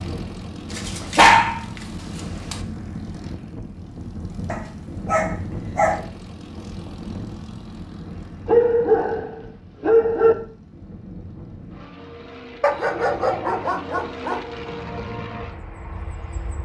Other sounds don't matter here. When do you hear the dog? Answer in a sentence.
The dog can be heard from 0.7 to 2.6 s, from 4.5 to 6.0 s, from 8.4 to 10.3 s and from 12.6 to 14.4 s.